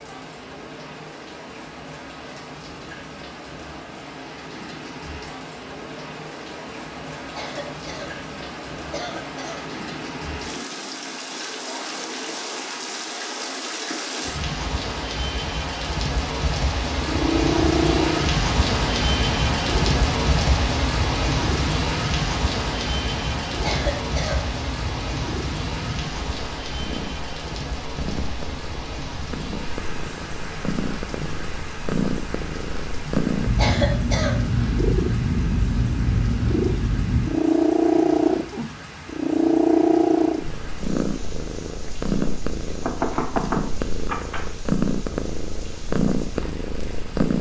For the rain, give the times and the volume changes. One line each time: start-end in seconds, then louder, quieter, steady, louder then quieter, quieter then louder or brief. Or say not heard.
0.0-47.3 louder then quieter.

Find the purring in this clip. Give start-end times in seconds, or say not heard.
16.9-47.3.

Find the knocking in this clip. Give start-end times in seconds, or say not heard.
42.8-44.5.